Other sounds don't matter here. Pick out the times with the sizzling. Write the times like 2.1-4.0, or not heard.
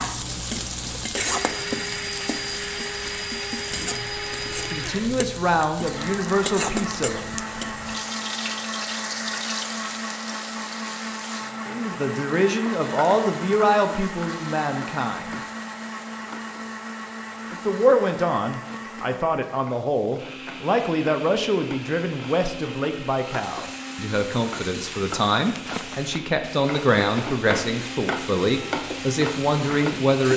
0.0-30.3.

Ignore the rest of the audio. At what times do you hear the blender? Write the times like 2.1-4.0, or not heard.
0.0-30.1.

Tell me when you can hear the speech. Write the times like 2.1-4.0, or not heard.
4.7-7.2, 11.7-15.4, 17.5-30.3.